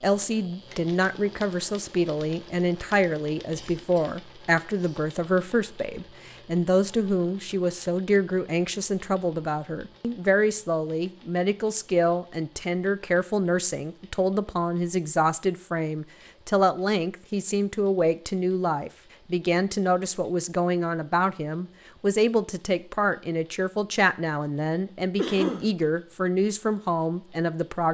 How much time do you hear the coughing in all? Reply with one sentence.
You can hear the coughing for 2 seconds altogether.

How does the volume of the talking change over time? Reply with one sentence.
The volume of the talking stays about the same.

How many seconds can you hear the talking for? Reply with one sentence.
You can hear the talking for 28 seconds altogether.